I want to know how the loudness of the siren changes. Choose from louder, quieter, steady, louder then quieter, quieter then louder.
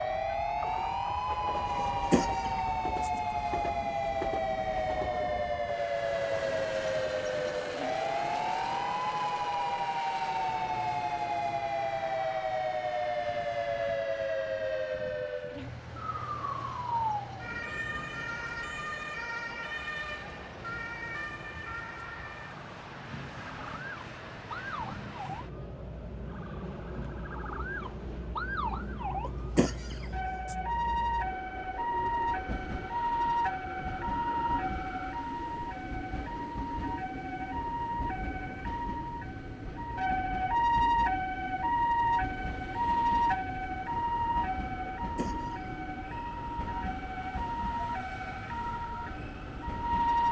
quieter then louder.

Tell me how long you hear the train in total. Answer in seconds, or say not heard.
50 s.